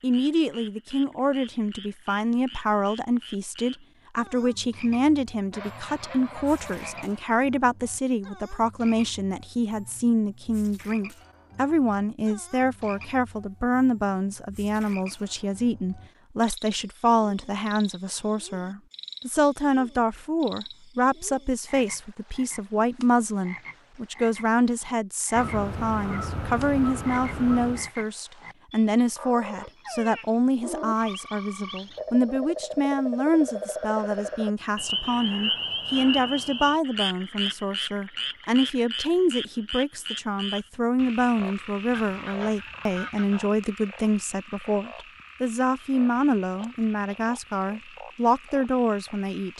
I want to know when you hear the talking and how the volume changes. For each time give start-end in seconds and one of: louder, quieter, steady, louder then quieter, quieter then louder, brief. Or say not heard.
0.0-49.5 steady.